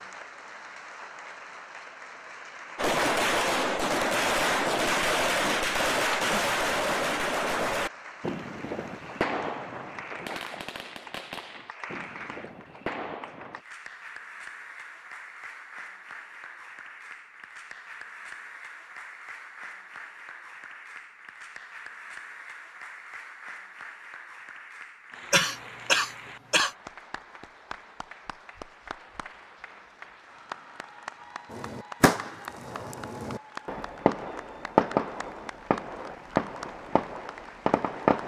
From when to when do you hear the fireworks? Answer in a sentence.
You can hear the fireworks from 2.8 to 13.6 s and from 31.5 to 38.2 s.